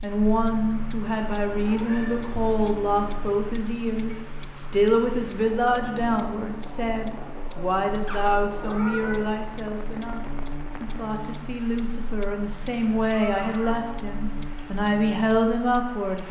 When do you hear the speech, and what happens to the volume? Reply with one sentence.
The speech can be heard from 0.0 to 16.2 s, getting quieter then louder.